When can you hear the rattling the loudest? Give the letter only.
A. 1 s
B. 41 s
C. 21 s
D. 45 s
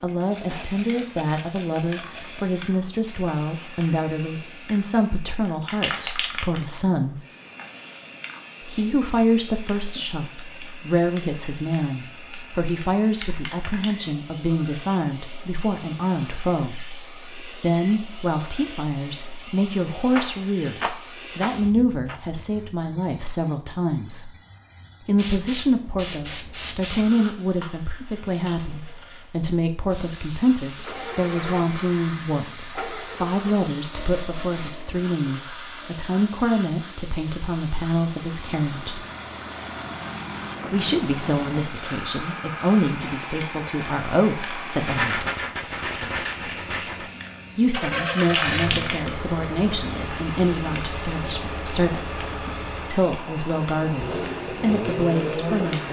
D.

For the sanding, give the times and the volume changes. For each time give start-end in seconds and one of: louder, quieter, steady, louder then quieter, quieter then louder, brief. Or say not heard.
not heard.